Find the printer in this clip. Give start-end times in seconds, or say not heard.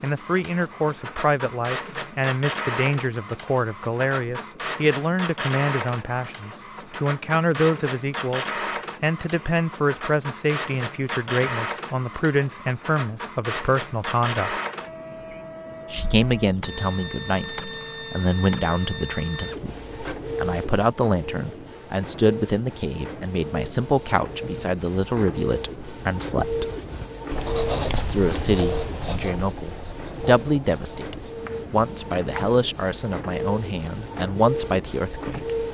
0.0-35.6.